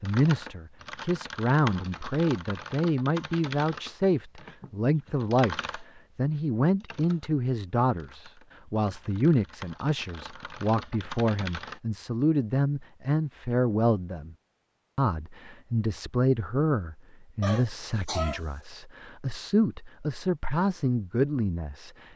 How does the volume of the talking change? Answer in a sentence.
The loudness of the talking stays about the same.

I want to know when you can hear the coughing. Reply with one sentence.
The coughing can be heard from 17.4 to 18.4 s.